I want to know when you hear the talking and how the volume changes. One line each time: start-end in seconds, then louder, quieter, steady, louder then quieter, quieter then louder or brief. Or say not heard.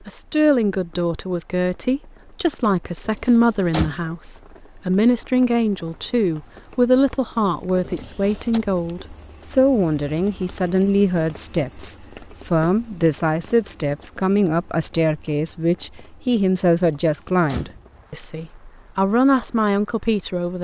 0.1-20.5 steady.